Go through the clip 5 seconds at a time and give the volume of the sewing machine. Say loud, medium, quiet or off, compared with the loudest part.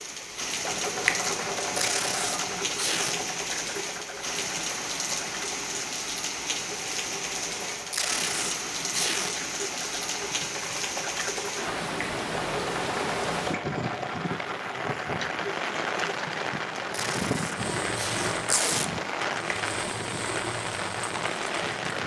loud, medium, loud, loud, loud.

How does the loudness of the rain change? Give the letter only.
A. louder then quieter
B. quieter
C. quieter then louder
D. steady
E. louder
D.